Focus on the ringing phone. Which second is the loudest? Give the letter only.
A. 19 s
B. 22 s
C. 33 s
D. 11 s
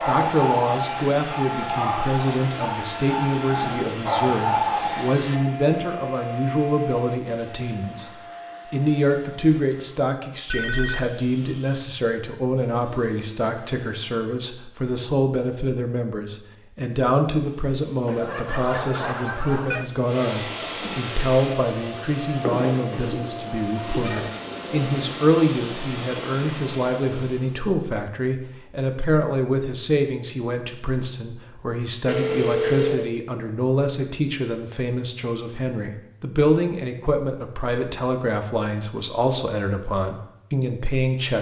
C.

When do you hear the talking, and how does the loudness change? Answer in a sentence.
The talking can be heard from 0.1 to 8.1 s, at a steady volume; and from 8.7 to 41.3 s, at a steady volume.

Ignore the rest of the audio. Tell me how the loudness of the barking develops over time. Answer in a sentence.
The volume of the barking goes down, then up.